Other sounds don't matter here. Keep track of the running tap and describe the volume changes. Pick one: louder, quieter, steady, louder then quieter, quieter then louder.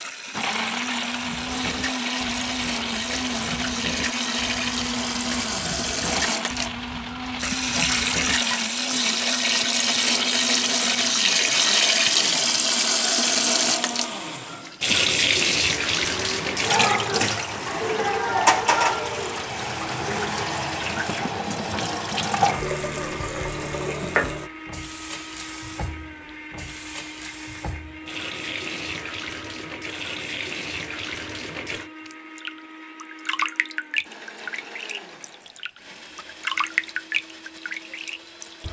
louder then quieter.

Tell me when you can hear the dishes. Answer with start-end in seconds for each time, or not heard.
1.1-8.6.